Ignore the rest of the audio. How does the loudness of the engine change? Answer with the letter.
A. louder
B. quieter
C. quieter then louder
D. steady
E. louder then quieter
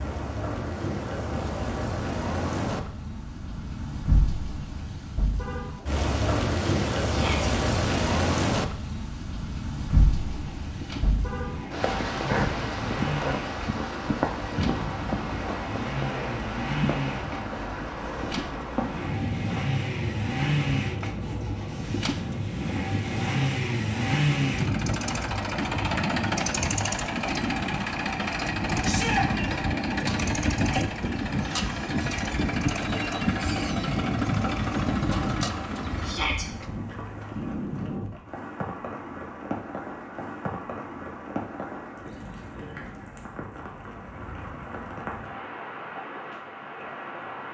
A.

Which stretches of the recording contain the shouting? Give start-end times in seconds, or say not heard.
7.0-7.5, 28.8-29.2, 36.0-36.5.